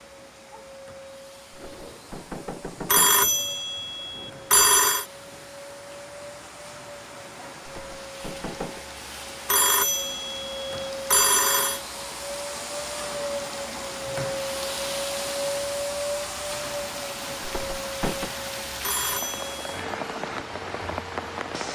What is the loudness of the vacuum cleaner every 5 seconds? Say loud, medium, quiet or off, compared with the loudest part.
quiet, medium, loud, loud, medium.